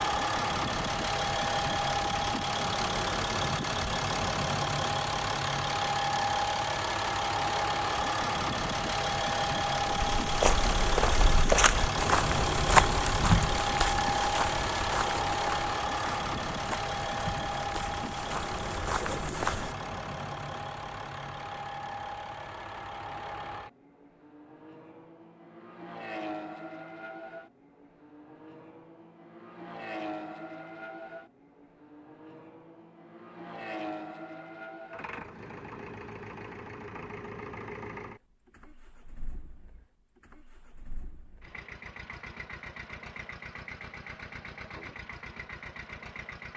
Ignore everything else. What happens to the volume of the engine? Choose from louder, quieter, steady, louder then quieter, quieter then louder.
quieter.